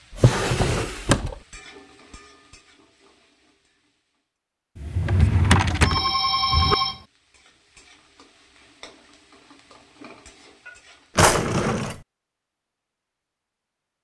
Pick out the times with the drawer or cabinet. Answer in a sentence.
You can hear the drawer or cabinet from 0.1 to 1.4 s, from 4.8 to 6.8 s and from 11.2 to 11.9 s.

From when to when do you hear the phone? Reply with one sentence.
The phone can be heard from 5.8 to 7.0 s.